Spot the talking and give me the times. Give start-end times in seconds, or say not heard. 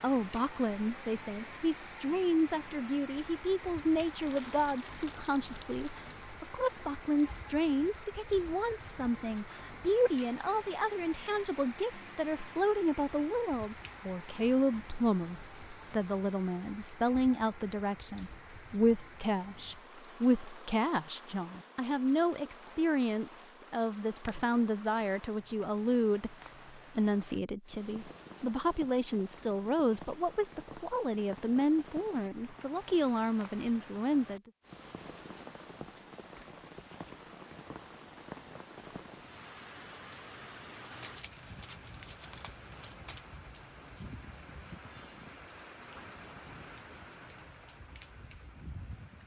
0.0-26.4, 26.9-34.4.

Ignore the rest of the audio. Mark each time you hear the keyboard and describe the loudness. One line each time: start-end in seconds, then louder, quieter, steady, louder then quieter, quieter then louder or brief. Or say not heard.
not heard.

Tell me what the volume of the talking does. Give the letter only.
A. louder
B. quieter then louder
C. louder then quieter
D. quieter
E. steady
E.